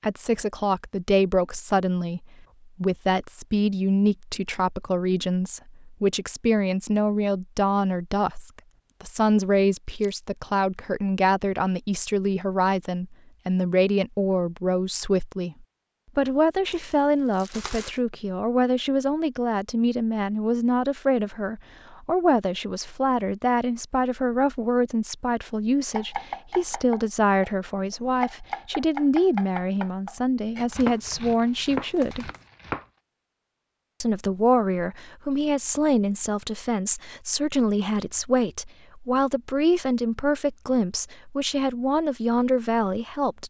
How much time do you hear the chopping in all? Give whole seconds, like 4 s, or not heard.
7 s.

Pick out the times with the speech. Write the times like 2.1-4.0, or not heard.
0.0-32.3, 34.0-43.4.